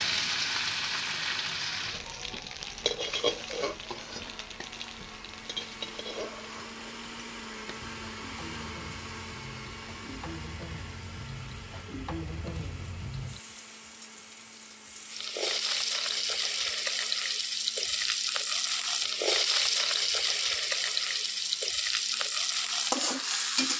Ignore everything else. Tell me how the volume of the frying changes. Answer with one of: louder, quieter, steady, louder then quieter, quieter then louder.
quieter then louder.